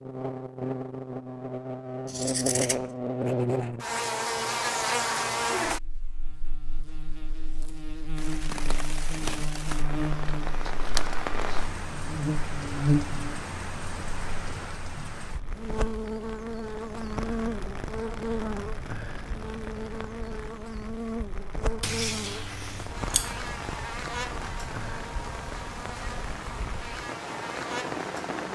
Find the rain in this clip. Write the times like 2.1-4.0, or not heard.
8.2-28.5.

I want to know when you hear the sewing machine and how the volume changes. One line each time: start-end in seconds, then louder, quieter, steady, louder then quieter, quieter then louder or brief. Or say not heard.
not heard.